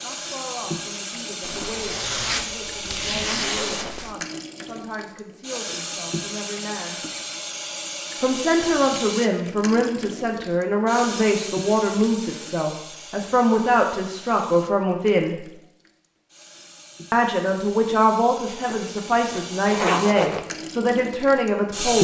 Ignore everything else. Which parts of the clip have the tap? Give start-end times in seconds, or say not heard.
0.0-21.9.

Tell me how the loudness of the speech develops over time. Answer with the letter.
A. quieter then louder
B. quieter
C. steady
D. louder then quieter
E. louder
E.